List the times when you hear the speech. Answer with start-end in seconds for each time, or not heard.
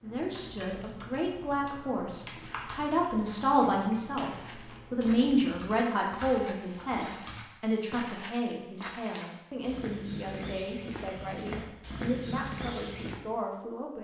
0.0-13.9.